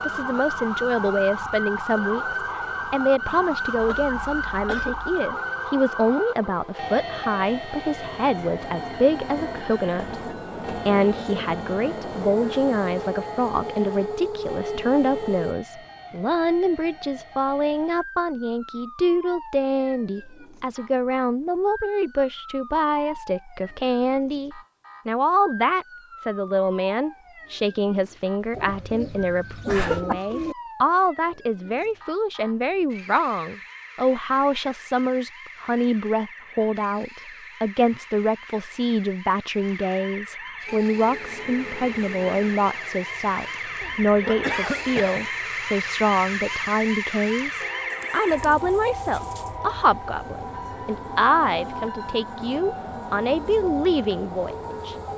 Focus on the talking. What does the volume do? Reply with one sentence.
The loudness of the talking stays about the same.